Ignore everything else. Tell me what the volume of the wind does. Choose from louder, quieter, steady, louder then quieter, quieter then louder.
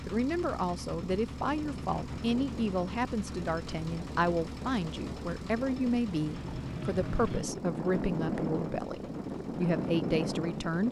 louder.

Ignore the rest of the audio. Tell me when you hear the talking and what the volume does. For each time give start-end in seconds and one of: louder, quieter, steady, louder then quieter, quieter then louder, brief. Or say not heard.
0.1-10.8 steady.